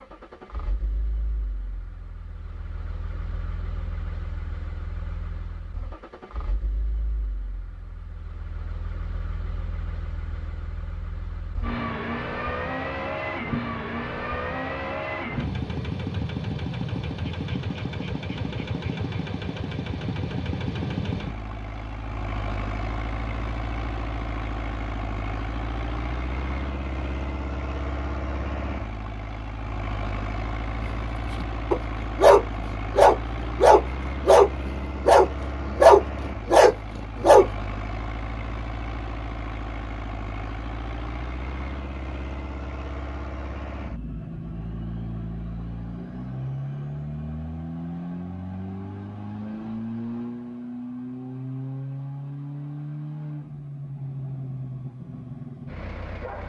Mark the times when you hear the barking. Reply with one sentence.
The barking can be heard from 30.9 to 37.5 s.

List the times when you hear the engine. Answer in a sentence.
The engine can be heard from 0.0 to 56.4 s.